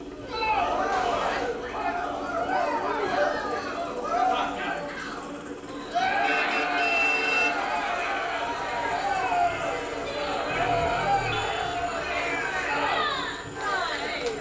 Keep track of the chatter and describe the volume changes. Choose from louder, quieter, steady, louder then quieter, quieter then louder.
steady.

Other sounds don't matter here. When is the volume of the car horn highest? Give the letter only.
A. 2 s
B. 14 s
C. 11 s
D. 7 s
D.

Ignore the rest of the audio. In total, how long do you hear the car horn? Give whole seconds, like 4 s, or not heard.
4 s.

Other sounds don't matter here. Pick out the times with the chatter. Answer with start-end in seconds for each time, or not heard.
0.1-14.3.